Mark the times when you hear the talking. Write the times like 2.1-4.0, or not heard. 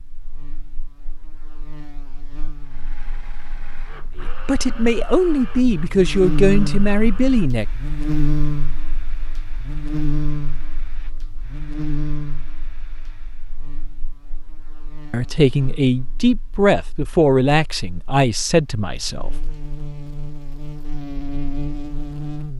4.2-7.7, 15.1-19.3.